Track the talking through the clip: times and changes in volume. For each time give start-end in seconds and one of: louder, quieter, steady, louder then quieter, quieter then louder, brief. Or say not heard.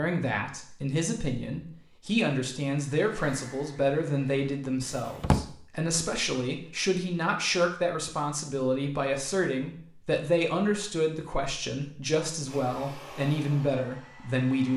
0.0-14.7 steady.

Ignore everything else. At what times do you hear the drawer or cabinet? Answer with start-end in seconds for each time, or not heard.
4.8-5.5.